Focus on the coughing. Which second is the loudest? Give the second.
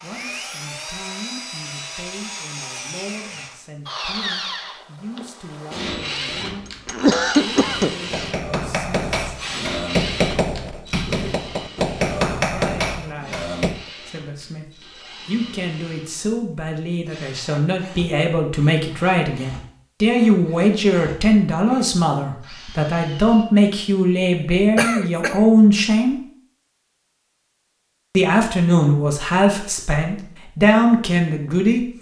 7 s.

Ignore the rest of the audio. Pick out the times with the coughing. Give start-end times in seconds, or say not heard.
6.4-8.2, 24.8-25.4.